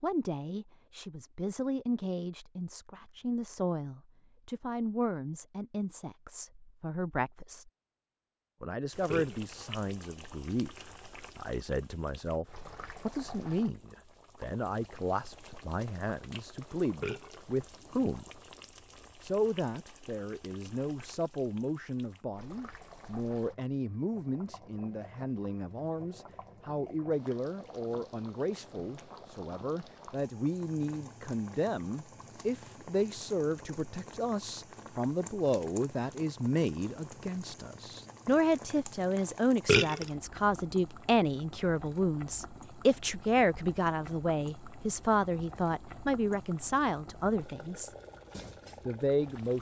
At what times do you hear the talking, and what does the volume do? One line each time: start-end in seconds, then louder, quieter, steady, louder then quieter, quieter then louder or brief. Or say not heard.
0.0-7.7 steady
8.6-18.3 steady
19.2-47.9 louder
48.9-49.5 brief.